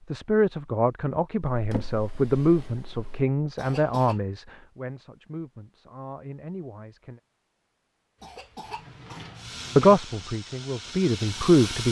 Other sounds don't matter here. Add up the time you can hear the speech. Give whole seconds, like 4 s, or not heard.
9 s.